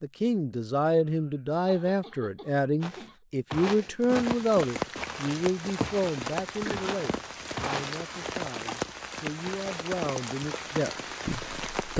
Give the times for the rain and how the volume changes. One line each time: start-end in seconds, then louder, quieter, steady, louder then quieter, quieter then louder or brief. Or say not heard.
4.0-11.9 steady.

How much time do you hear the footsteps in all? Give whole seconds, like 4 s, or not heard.
5 s.